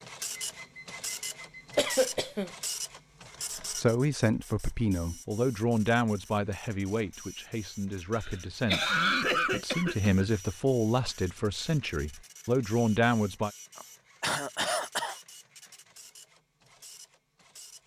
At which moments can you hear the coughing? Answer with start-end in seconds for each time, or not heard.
1.8-2.5, 8.2-10.2, 13.8-15.2.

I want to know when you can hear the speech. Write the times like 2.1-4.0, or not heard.
3.6-13.5.